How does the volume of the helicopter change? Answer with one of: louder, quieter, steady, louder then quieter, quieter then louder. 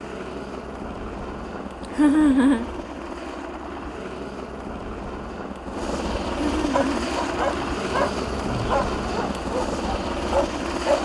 louder.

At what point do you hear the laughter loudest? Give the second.
2 s.